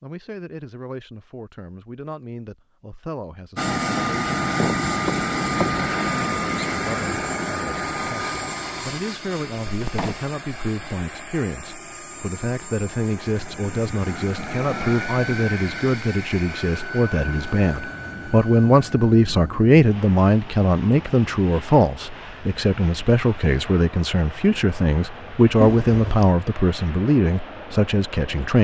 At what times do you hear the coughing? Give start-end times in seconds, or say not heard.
4.5-5.8, 9.7-10.3, 25.6-26.3.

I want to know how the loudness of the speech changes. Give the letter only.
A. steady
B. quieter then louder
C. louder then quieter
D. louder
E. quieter
D.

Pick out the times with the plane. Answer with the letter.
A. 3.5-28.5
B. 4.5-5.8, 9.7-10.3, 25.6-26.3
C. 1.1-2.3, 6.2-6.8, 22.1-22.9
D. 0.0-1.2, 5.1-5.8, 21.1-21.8
A.